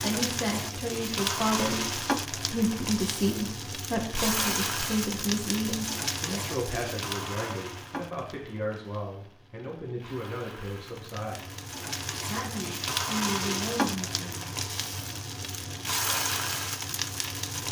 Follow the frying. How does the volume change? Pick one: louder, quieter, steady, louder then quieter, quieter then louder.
quieter then louder.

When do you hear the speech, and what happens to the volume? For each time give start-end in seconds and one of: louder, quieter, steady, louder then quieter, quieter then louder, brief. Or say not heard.
0.0-11.6 quieter
12.2-14.5 brief.